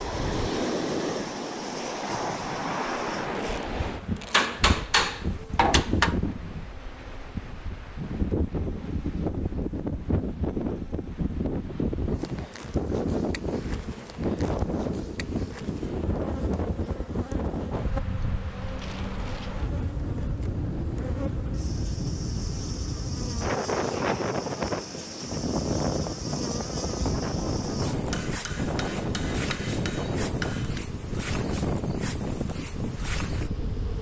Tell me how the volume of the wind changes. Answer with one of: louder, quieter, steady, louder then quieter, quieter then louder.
steady.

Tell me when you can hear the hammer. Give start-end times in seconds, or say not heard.
4.3-6.2, 28.1-30.9.